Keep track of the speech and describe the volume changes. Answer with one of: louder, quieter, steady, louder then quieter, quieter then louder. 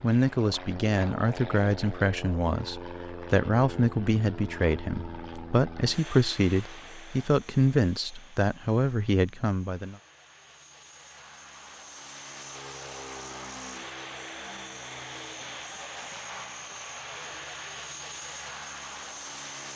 steady.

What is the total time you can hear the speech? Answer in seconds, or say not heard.
10 s.